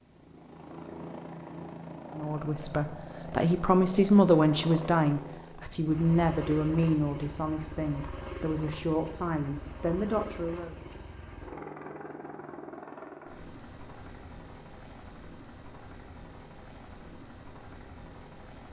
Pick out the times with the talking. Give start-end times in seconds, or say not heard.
2.1-10.8.